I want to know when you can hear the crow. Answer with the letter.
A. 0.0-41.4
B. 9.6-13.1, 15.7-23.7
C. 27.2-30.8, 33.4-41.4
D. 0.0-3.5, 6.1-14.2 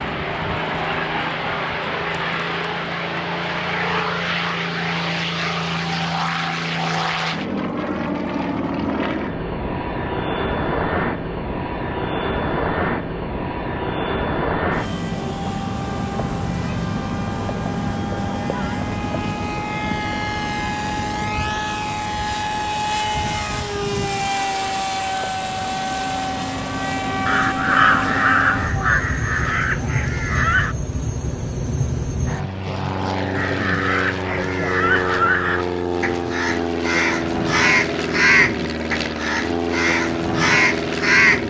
C.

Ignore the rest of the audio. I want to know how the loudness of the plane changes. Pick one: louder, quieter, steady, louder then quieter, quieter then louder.
steady.